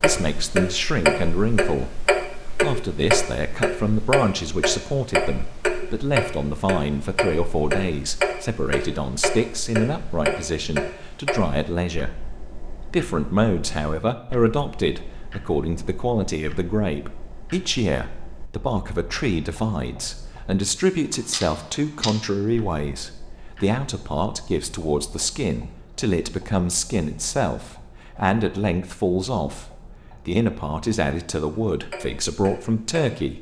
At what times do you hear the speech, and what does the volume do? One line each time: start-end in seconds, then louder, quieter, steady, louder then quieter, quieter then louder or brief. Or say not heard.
0.0-12.3 steady
12.9-33.3 steady.